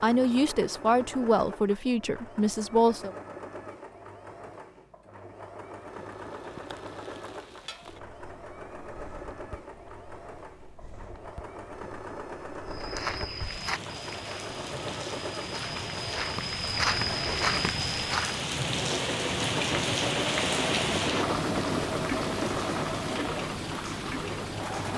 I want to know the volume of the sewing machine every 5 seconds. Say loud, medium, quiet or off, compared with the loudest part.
medium, medium, medium, loud, loud.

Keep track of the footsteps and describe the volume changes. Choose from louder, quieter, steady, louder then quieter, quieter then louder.
quieter then louder.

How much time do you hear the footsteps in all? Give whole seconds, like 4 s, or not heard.
6 s.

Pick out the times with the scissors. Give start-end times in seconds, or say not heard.
not heard.